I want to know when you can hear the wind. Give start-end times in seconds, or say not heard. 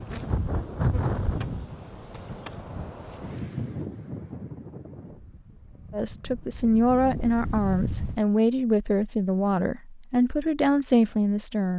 0.0-8.2.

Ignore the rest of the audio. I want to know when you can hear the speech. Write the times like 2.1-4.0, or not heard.
5.9-11.7.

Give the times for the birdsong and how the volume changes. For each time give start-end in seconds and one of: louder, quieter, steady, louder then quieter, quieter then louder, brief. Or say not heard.
not heard.